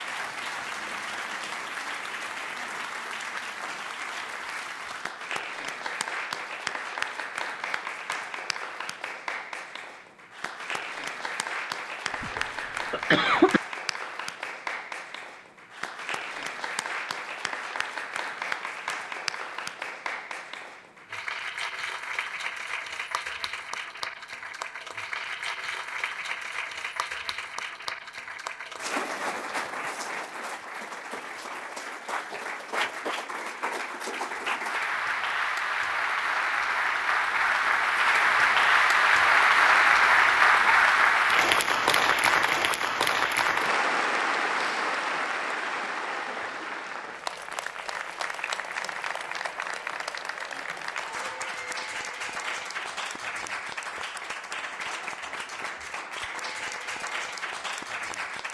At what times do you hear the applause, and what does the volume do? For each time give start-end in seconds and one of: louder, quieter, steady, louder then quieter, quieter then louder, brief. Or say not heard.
0.0-58.5 louder then quieter.